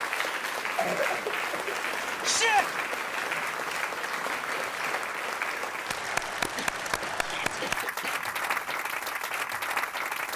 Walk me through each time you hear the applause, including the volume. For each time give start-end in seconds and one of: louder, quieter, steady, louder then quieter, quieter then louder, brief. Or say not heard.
0.0-10.3 steady.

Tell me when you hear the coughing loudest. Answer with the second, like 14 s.
1 s.